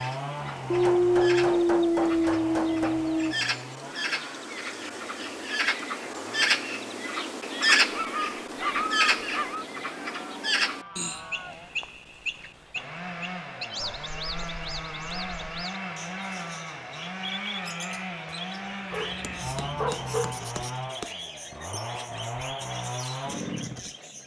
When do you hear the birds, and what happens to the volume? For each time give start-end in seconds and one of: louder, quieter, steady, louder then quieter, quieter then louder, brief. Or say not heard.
0.0-24.2 louder then quieter.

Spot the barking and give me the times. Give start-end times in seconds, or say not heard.
0.7-3.4, 7.8-9.7, 13.8-15.4, 18.9-20.4.